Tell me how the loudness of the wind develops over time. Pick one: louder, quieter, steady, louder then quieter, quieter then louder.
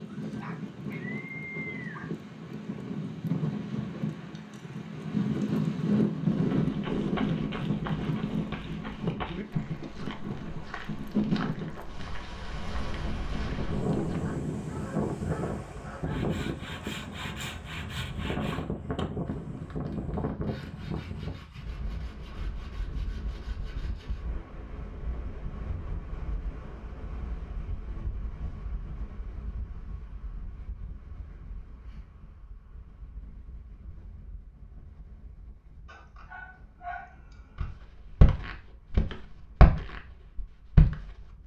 quieter.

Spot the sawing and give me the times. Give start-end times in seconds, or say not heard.
15.9-24.2.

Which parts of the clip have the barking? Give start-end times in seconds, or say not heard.
0.2-2.0, 14.2-16.2, 35.9-37.6.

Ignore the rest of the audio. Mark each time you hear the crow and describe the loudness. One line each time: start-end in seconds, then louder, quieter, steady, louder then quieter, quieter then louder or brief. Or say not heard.
not heard.